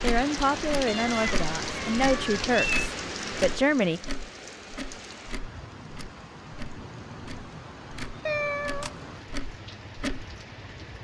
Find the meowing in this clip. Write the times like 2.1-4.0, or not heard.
0.8-2.9, 8.2-9.0.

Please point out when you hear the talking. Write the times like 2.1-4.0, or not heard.
0.0-4.0.